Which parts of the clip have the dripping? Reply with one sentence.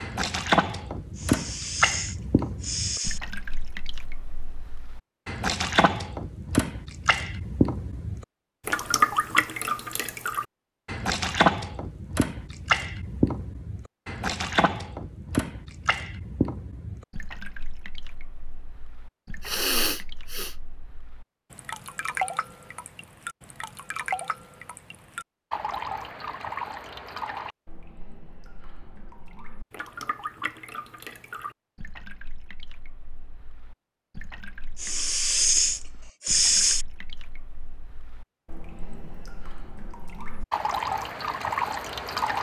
You can hear the dripping from 0.0 to 42.3 s.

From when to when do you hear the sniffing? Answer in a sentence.
You can hear the sniffing from 1.1 to 3.2 s, from 19.4 to 20.6 s and from 34.8 to 36.9 s.